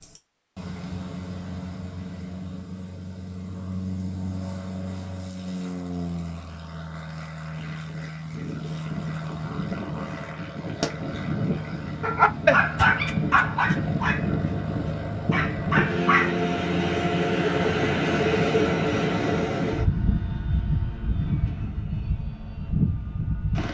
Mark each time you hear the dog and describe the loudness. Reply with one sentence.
You can hear the dog from 12.0 to 16.4 s, getting quieter then louder.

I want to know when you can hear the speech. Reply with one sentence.
The speech can't be heard in this clip.